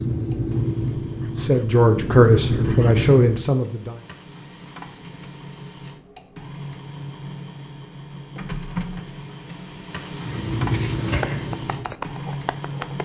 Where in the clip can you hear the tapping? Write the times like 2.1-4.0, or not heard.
11.1-13.0.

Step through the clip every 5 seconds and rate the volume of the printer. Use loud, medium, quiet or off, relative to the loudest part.
medium, loud, loud.